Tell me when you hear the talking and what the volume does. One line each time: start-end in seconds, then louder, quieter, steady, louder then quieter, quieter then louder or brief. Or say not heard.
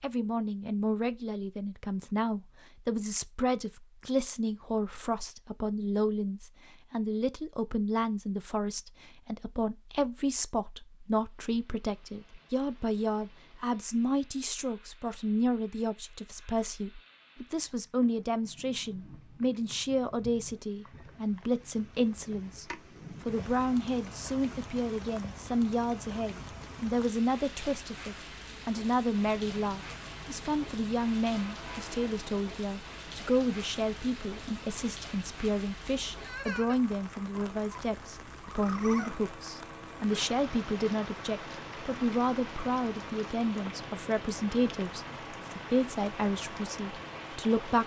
0.0-47.8 steady.